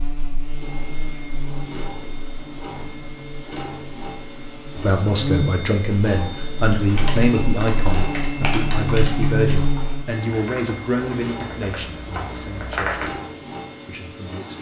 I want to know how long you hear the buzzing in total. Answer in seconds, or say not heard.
10 s.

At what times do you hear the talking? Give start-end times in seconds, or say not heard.
4.8-13.2, 13.8-14.5.